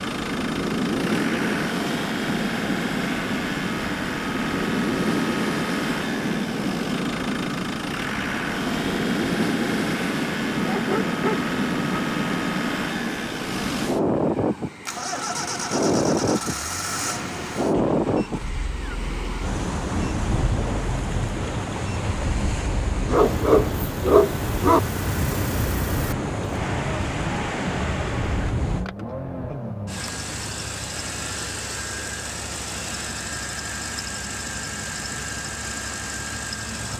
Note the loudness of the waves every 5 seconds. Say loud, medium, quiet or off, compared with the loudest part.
loud, loud, loud, loud, loud, loud, off, off.